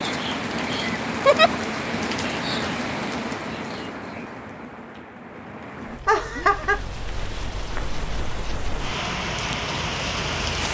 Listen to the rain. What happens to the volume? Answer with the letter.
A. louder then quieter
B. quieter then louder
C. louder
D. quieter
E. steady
B.